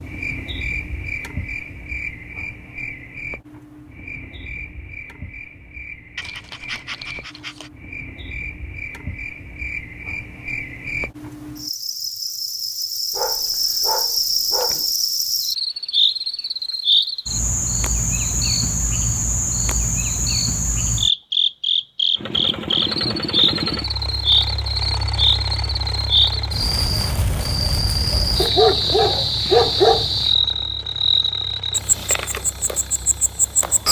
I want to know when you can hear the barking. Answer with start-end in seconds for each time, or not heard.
6.2-7.7, 13.1-14.9, 28.4-30.1.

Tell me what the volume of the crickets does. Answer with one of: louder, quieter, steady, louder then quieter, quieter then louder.
louder.